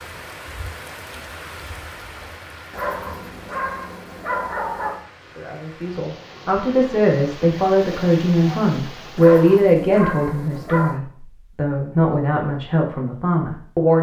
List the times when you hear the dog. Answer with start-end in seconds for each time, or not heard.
2.7-5.0, 9.2-11.0.